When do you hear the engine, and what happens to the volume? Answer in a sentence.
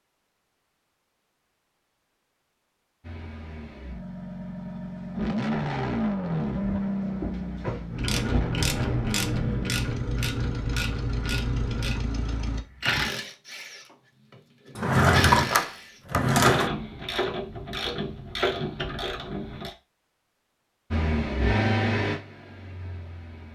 The engine can be heard from 3.0 to 12.7 s, getting louder then quieter; and briefly from 20.9 to 23.4 s.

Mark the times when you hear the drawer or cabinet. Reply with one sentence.
You can hear the drawer or cabinet from 6.6 to 8.4 s and from 14.8 to 16.7 s.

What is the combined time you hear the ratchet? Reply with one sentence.
The ratchet can be heard for 12 seconds in total.